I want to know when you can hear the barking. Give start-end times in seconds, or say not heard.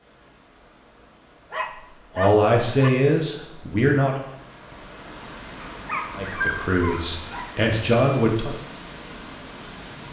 1.5-2.9, 5.6-7.7.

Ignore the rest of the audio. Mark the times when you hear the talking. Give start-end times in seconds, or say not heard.
2.1-4.2, 6.2-8.5.